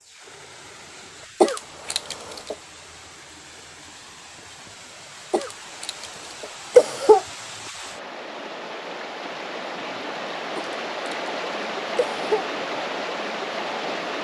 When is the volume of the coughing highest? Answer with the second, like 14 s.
7 s.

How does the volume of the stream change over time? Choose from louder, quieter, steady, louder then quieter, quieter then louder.
louder.